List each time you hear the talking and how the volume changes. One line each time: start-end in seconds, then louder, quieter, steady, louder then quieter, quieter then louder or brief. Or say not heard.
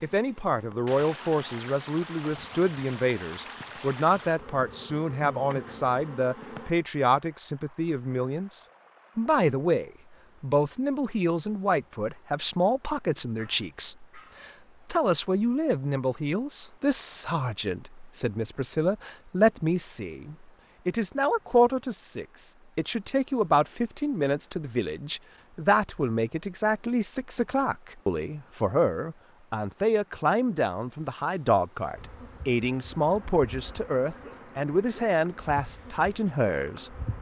0.0-37.1 steady.